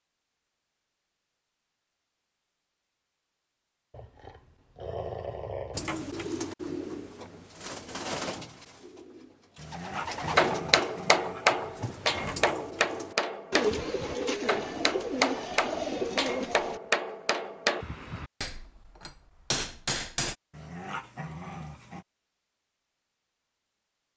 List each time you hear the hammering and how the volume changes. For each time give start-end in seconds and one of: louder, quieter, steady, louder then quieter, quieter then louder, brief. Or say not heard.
10.3-20.4 quieter.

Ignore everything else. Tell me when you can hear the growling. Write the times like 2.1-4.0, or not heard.
3.9-5.8, 9.6-11.4, 20.5-22.1.